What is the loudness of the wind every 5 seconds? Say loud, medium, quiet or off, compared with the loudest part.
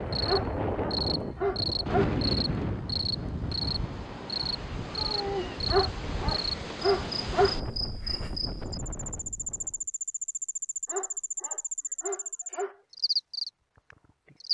loud, medium, off.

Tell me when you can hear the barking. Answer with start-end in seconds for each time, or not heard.
0.2-2.1, 5.7-7.6, 10.8-12.8.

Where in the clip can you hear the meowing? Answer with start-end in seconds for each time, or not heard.
5.0-5.6.